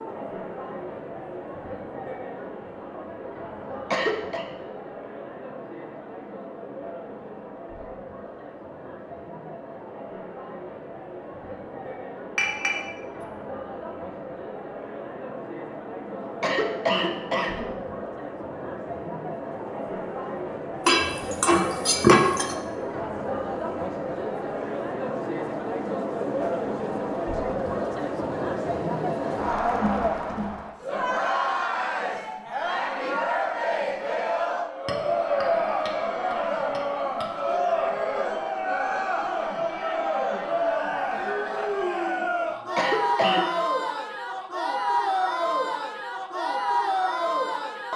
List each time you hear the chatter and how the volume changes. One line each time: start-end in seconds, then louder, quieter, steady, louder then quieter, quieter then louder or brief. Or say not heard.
0.0-47.9 louder.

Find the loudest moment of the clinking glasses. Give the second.
22 s.